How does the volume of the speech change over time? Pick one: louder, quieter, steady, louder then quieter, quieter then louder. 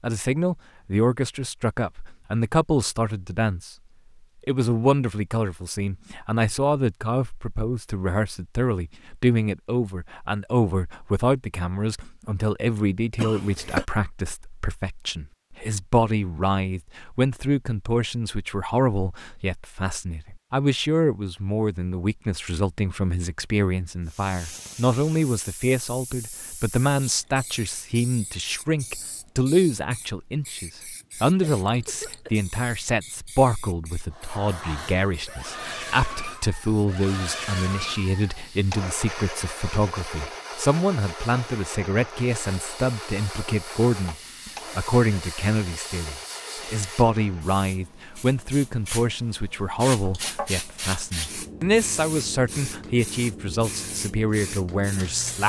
steady.